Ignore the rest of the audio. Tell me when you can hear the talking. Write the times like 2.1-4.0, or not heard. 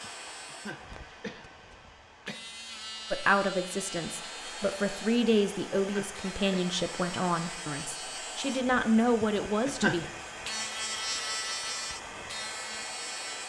3.1-10.1.